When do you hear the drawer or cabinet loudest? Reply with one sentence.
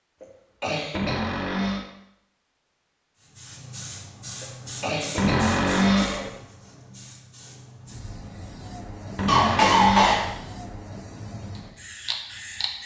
The loudest moment of the drawer or cabinet is at 6 seconds.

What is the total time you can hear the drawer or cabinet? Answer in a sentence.
The drawer or cabinet can be heard for 3 seconds in total.